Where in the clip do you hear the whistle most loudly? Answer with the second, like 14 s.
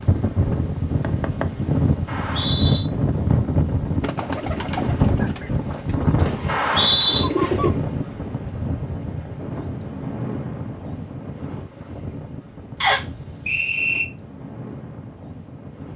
7 s.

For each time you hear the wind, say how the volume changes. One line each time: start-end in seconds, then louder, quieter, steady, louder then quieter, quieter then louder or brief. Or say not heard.
0.0-15.9 quieter.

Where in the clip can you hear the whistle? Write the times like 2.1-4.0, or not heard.
2.0-2.8, 6.5-7.2, 12.8-14.1.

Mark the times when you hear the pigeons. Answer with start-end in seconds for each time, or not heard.
4.0-7.7.